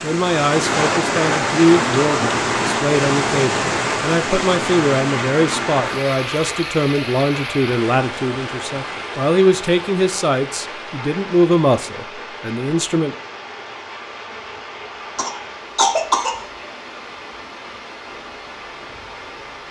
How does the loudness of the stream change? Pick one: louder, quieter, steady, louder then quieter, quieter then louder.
quieter.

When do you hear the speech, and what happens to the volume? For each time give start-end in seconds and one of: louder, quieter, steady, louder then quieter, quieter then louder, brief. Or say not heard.
0.0-13.2 steady.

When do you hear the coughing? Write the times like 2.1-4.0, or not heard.
15.2-16.4.